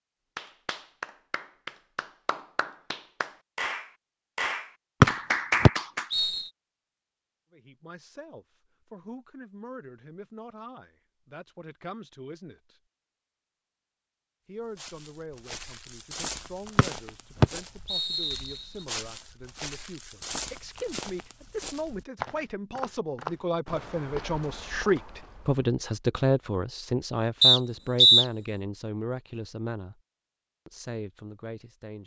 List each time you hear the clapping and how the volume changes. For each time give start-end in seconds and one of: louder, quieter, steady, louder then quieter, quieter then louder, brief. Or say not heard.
0.3-6.1 louder.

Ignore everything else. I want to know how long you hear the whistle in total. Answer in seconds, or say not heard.
3 s.